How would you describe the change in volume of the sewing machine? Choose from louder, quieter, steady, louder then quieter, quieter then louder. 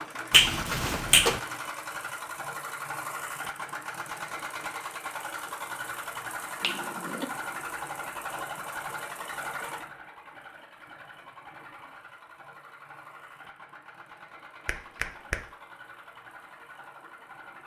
quieter.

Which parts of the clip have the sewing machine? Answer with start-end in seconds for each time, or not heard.
0.0-17.6.